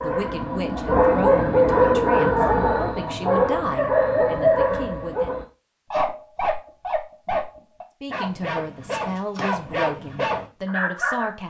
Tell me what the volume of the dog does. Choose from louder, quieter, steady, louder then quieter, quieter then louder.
quieter.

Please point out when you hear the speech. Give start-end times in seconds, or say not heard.
0.0-5.3, 8.0-11.4.